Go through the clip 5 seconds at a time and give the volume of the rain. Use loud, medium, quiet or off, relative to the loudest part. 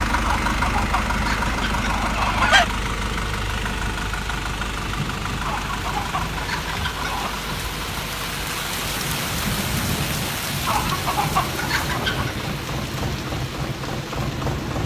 medium, loud, loud.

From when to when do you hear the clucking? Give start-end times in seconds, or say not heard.
0.2-2.6, 5.4-7.4, 10.7-12.3.